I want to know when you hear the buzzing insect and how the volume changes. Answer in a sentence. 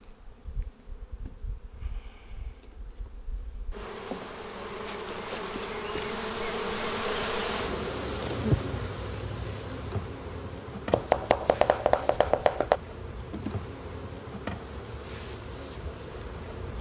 You can hear the buzzing insect from 0.0 to 16.7 s, getting louder then quieter.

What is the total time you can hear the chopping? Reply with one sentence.
You can hear the chopping for 2 seconds altogether.